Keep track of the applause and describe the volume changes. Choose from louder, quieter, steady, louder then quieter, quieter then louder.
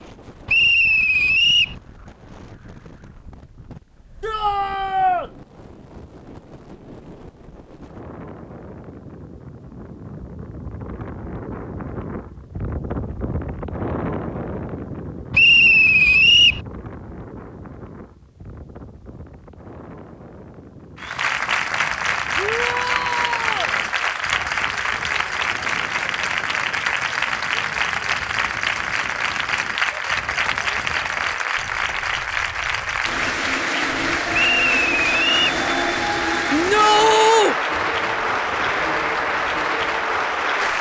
steady.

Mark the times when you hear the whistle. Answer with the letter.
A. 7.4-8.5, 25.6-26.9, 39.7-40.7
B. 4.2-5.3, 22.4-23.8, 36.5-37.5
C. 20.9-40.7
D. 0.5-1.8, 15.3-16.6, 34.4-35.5
D.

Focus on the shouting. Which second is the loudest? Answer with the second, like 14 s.
37 s.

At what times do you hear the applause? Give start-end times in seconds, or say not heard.
20.9-40.7.